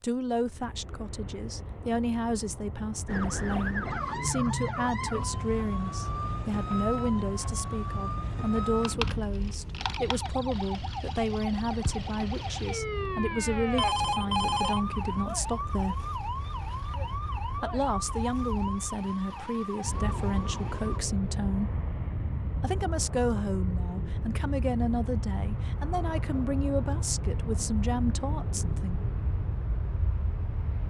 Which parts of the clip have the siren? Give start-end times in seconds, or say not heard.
3.0-21.0.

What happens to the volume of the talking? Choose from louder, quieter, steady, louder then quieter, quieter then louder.
steady.